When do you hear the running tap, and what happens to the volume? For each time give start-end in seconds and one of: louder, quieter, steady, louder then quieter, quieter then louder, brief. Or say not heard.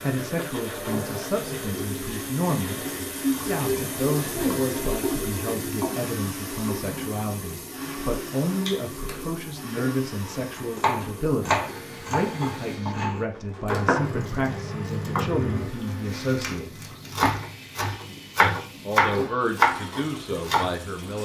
0.0-21.1 quieter.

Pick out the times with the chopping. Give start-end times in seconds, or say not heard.
10.3-20.8.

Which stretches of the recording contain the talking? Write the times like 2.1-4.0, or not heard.
0.0-16.9, 18.4-21.1.